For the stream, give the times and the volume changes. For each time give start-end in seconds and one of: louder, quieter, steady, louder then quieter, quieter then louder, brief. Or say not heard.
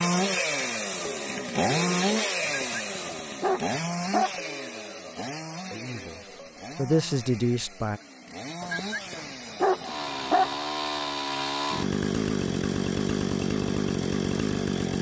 not heard.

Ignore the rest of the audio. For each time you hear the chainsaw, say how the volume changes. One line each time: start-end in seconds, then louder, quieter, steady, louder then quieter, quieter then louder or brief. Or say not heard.
0.0-14.9 quieter then louder.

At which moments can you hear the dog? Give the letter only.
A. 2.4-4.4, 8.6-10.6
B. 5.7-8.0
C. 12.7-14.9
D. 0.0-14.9
A.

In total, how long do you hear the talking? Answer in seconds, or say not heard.
2 s.